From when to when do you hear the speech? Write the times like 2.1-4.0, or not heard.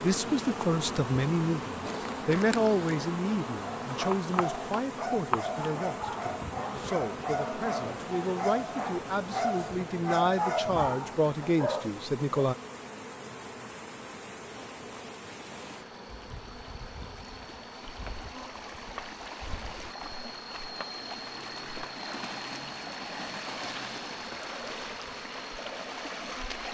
0.0-12.6.